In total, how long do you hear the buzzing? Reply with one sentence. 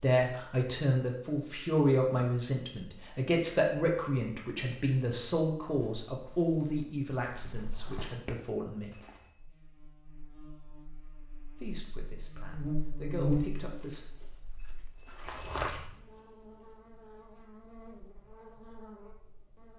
You can hear the buzzing for 10 seconds altogether.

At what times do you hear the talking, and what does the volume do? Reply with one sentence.
The talking can be heard from 0.0 to 9.1 s, getting quieter; and briefly from 11.5 to 14.1 s.